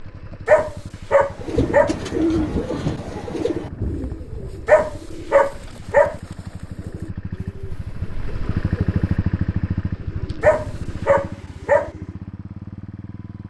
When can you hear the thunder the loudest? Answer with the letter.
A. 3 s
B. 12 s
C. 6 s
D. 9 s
A.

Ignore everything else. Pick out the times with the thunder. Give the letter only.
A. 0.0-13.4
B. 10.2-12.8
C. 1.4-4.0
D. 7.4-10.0
C.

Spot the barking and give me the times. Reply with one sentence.
You can hear the barking from 0.5 to 1.9 s, from 4.7 to 6.2 s and from 10.4 to 11.9 s.